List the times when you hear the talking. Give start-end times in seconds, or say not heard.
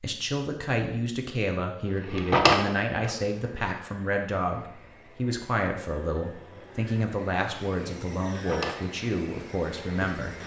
0.0-10.3.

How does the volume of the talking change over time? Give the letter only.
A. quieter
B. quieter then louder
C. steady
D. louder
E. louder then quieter
C.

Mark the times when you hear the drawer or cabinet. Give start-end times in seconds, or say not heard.
1.9-3.1, 8.3-8.8.